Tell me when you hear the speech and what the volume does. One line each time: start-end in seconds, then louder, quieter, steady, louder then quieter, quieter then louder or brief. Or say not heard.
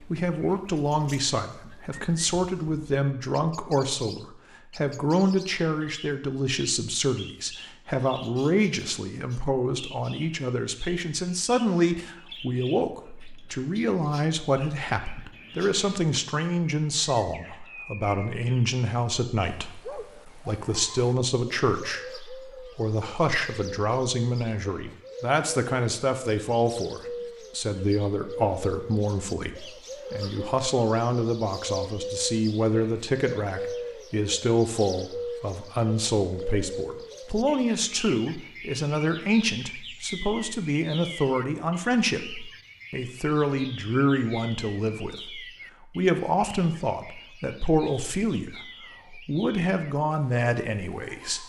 0.0-51.4 steady.